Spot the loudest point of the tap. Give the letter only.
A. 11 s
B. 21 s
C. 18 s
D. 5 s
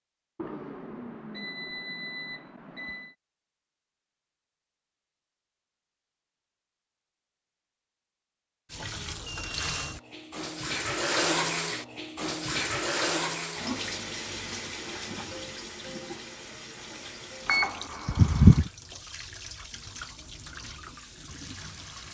A.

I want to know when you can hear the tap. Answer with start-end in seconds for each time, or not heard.
8.7-22.0.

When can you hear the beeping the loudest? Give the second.
18 s.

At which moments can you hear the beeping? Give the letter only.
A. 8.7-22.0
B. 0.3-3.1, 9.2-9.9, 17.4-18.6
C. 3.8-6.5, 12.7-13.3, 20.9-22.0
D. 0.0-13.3
B.